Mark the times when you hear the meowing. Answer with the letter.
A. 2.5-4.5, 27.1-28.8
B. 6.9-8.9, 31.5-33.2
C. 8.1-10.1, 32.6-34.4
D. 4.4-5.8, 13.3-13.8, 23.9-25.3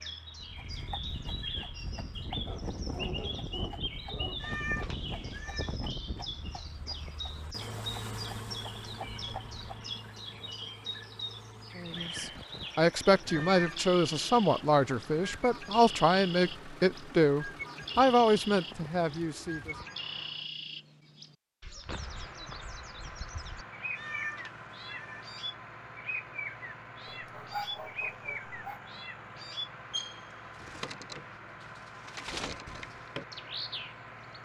D.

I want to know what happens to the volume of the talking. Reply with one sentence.
The volume of the talking stays about the same.